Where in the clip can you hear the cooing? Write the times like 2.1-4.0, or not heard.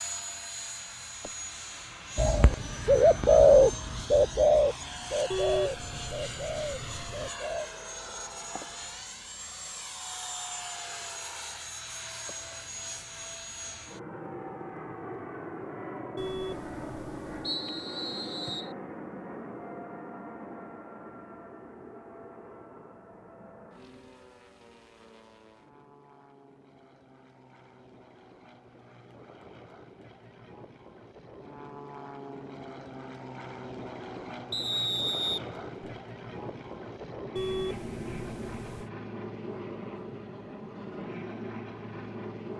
2.1-7.7.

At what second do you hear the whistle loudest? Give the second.
35 s.